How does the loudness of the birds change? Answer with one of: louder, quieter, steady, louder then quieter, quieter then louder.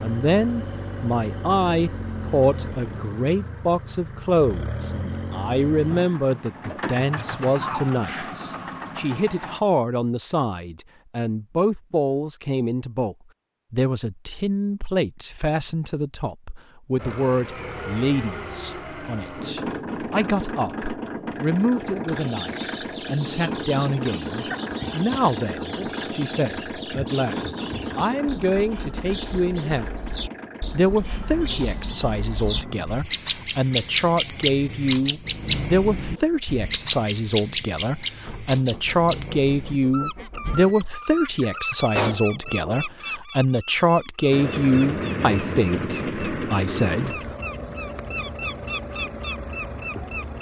louder then quieter.